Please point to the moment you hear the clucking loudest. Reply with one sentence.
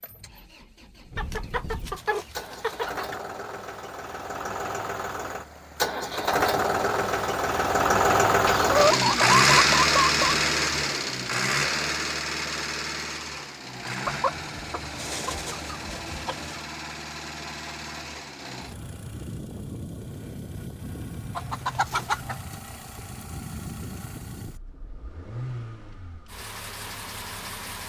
The volume of the clucking peaks at 9 seconds.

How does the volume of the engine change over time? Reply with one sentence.
The loudness of the engine goes up, then down.